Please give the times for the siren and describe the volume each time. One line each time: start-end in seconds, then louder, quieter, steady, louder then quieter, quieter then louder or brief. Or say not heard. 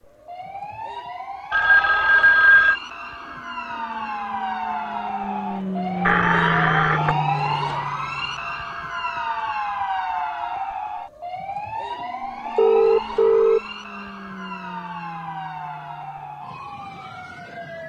0.0-17.8 louder then quieter.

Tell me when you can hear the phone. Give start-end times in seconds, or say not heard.
1.5-2.8, 6.0-7.2, 12.6-13.6.